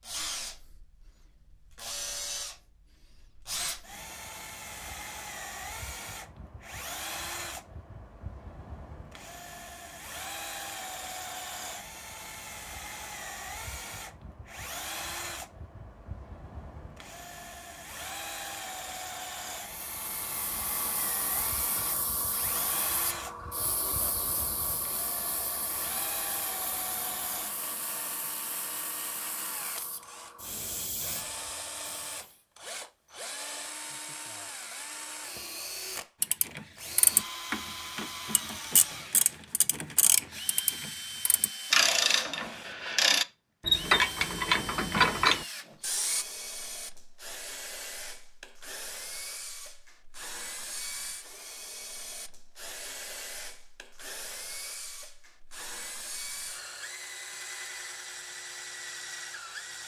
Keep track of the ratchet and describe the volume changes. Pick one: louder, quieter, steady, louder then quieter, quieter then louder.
louder.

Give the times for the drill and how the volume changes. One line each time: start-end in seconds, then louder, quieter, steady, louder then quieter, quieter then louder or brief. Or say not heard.
0.0-59.8 steady.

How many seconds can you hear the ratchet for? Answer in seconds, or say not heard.
10 s.